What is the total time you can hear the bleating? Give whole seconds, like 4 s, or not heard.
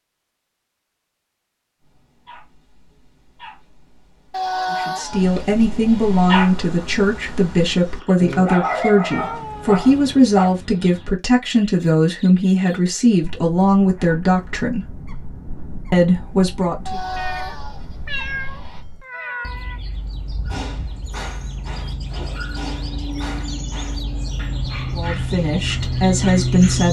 4 s.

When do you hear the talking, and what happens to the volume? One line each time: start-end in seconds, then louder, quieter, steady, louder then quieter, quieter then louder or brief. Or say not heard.
4.7-14.8 steady
15.9-17.0 brief
24.9-26.8 brief.